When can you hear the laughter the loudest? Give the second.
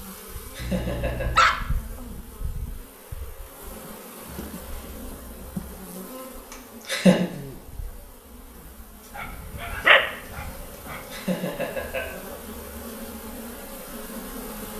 7 s.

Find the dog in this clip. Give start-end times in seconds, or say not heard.
0.6-2.2, 9.2-11.0.